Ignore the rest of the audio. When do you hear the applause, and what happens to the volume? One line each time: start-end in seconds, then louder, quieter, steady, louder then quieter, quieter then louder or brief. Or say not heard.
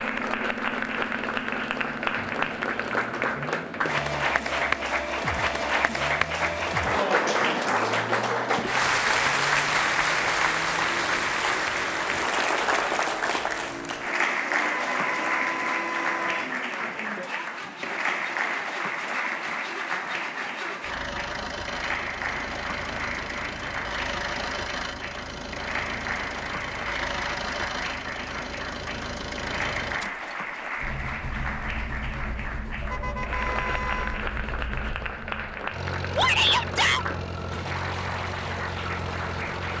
0.0-39.7 quieter.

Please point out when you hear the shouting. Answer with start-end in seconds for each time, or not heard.
36.1-37.0.